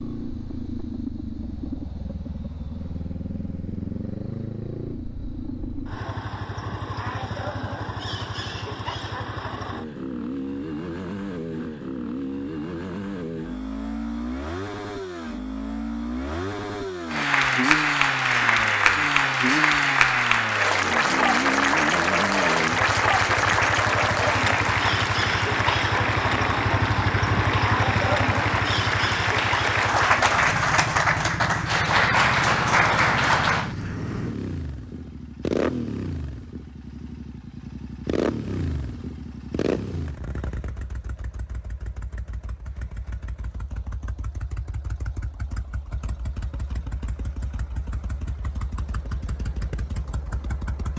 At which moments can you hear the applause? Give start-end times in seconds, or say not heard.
17.1-33.8.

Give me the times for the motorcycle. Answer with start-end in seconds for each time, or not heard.
0.0-50.9.